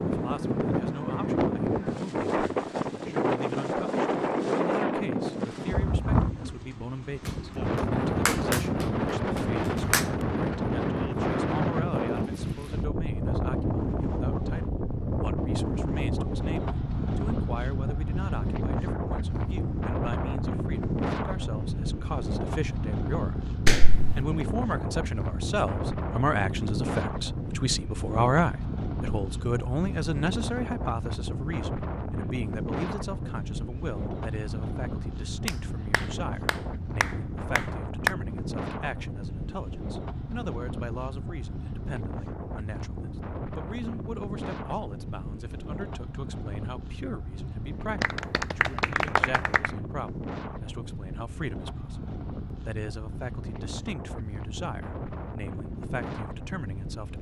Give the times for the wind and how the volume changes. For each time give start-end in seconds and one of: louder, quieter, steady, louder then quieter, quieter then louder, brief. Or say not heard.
0.0-57.1 quieter.